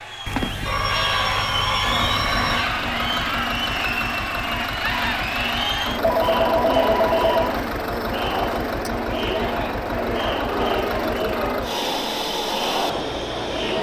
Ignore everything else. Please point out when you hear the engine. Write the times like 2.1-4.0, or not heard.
1.8-13.7.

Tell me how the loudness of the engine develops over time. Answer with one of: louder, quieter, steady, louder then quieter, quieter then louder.
steady.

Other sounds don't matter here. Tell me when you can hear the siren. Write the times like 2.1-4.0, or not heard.
not heard.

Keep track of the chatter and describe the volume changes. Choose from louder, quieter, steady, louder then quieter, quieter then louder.
steady.